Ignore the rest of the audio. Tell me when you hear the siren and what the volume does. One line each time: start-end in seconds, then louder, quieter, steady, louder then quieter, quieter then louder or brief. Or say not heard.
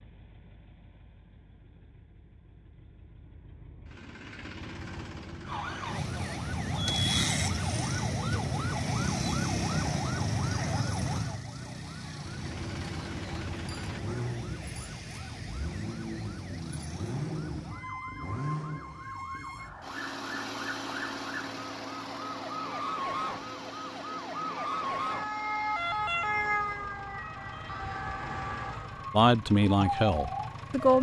5.5-30.9 quieter then louder.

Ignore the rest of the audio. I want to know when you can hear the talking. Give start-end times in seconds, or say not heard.
29.1-30.9.